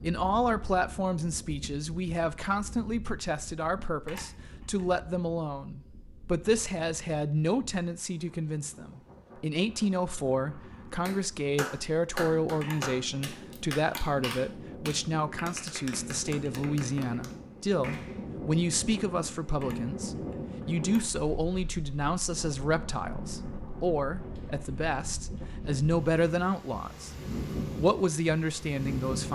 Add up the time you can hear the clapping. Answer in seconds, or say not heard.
7 s.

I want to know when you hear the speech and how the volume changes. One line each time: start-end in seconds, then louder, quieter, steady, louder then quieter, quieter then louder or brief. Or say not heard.
0.0-27.1 steady
27.8-29.2 brief.